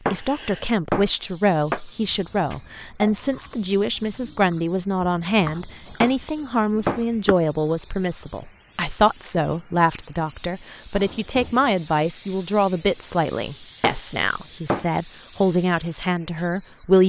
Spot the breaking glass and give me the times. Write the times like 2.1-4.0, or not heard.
0.1-2.8, 6.0-7.2, 13.8-14.9.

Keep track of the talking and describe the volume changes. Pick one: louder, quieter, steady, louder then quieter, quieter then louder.
steady.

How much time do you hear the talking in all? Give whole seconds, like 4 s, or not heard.
17 s.